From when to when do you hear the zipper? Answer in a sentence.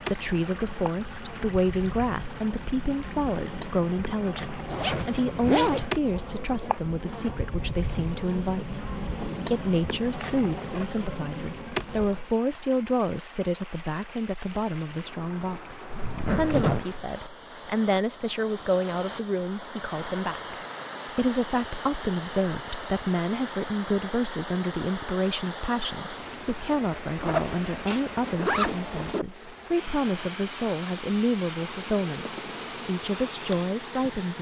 You can hear the zipper from 4.7 to 5.9 s, from 15.9 to 17.1 s and from 27.2 to 29.2 s.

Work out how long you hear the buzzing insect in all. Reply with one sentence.
The buzzing insect can be heard for 15 seconds in total.